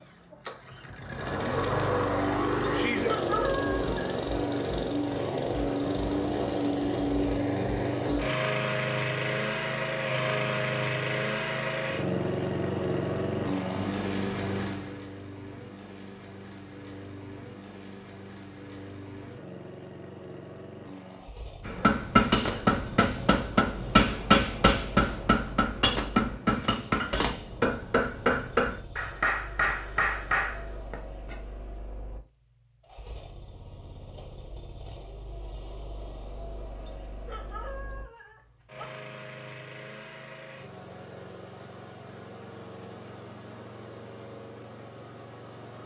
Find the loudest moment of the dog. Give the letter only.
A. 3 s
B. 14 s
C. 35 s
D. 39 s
A.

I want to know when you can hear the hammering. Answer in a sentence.
You can hear the hammering from 21.6 to 31.4 s.